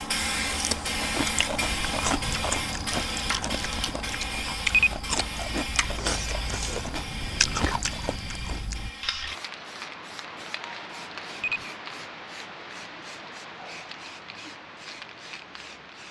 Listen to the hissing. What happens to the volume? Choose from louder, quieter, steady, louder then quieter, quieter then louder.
quieter.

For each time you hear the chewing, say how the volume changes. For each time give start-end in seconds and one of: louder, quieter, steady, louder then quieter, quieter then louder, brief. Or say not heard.
0.3-8.9 steady.